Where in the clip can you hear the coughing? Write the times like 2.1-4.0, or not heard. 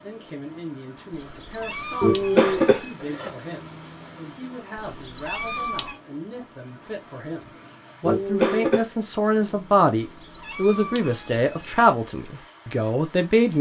2.0-3.3, 8.1-8.8.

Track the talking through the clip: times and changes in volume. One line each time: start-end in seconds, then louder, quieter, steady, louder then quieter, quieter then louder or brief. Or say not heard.
0.0-13.5 louder.